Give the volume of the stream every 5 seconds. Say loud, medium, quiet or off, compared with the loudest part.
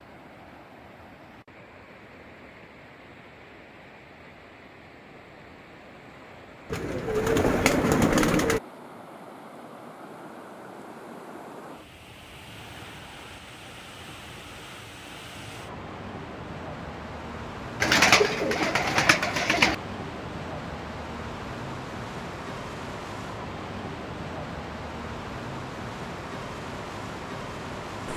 quiet, medium, medium, loud, loud, loud.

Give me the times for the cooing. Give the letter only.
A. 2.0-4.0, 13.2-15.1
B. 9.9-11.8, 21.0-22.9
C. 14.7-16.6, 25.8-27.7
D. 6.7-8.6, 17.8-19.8
D.